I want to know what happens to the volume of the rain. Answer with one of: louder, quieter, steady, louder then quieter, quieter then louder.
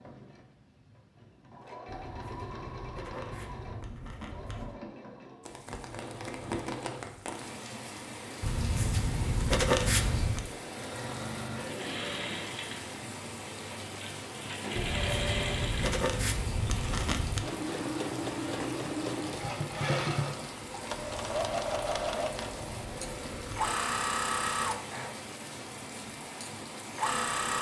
steady.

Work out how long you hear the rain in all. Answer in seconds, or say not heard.
22 s.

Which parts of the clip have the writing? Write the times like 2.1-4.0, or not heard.
1.9-4.8, 8.4-10.4, 14.8-17.4, 20.9-23.8.